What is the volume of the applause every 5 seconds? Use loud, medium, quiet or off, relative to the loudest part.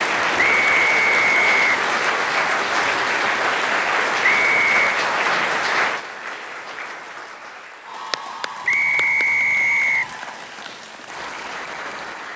loud, medium, quiet.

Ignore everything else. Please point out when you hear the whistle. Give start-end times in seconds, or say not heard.
0.3-1.9, 4.2-4.8, 8.7-10.1.